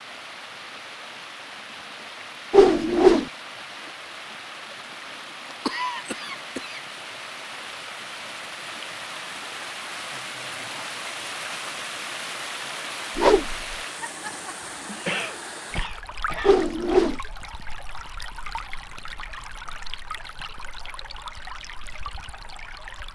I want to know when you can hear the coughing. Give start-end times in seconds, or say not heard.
5.5-6.8, 14.6-16.6.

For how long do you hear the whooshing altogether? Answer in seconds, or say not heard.
2 s.